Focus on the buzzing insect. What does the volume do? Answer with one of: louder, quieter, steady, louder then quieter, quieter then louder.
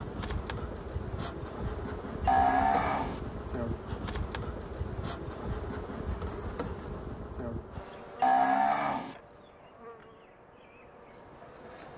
quieter.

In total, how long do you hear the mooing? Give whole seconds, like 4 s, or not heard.
2 s.